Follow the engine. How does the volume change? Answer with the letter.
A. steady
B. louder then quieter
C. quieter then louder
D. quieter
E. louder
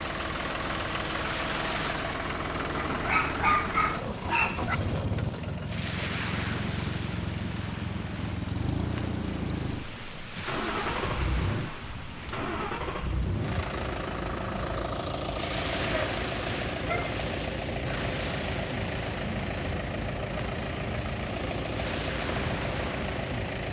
A.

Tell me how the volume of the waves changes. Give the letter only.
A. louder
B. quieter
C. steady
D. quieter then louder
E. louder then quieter
C.